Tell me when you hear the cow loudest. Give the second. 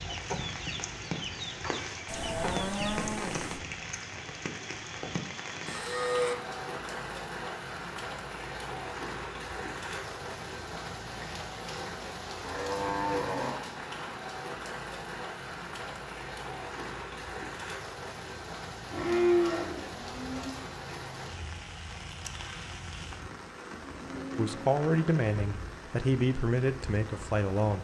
19 s.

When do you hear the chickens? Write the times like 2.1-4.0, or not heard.
0.0-3.1.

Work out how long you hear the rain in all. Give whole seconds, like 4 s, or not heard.
28 s.